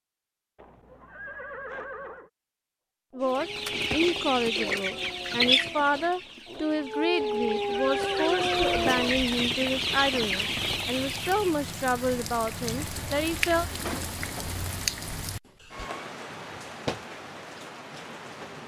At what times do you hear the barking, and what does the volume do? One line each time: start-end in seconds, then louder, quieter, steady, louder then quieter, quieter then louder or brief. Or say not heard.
3.1-9.2 louder.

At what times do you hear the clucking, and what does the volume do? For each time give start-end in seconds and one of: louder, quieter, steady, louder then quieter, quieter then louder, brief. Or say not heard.
3.2-11.6 quieter then louder.